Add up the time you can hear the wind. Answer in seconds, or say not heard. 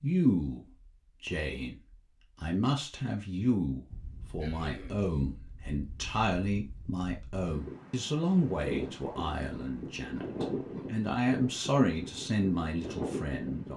10 s.